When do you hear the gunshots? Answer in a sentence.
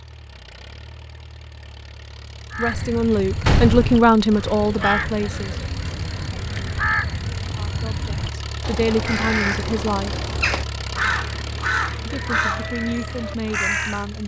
You can hear the gunshots from 3.5 to 4.0 s.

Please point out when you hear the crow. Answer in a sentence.
You can hear the crow from 2.5 to 14.1 s.